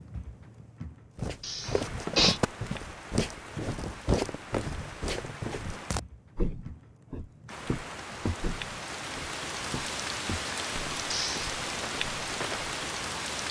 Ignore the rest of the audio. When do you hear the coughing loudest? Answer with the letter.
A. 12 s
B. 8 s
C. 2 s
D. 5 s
C.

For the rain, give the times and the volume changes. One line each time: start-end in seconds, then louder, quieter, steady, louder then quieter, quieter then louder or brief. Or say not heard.
0.0-13.4 louder.